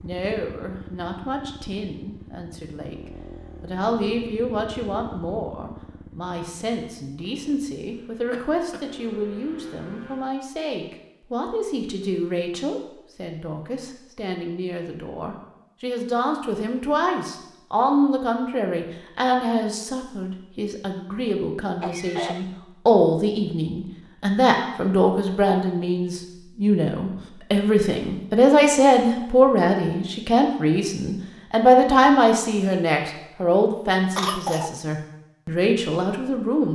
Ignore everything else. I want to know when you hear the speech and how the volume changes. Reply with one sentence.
You can hear the speech from 0.0 to 36.7 s, getting louder.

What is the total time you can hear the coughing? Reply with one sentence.
The coughing can be heard for 2 seconds in total.